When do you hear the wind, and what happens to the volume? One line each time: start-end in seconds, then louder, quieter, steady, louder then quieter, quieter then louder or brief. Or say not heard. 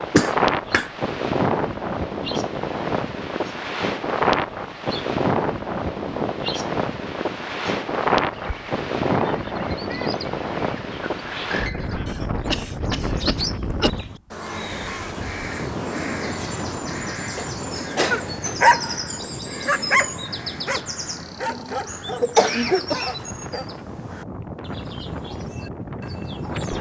0.0-26.7 quieter.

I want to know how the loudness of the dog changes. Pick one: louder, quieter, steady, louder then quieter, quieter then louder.
quieter.